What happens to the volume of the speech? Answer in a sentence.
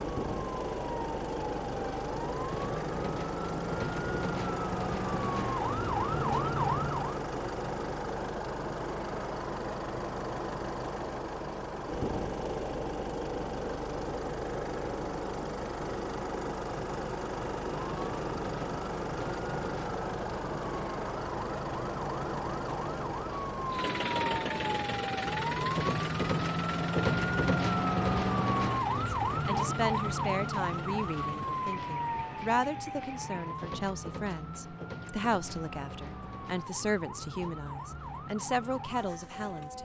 The volume of the speech stays about the same.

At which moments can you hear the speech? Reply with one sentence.
You can hear the speech from 29.1 to 39.7 s.